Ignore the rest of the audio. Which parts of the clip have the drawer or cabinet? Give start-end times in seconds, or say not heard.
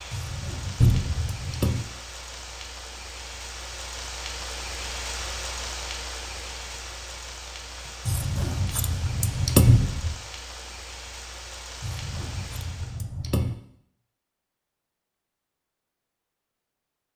0.8-1.3, 9.7-10.2.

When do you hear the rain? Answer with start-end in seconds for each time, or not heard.
0.0-13.1.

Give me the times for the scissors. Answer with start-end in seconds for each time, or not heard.
0.1-1.9, 8.1-9.8, 11.8-13.6.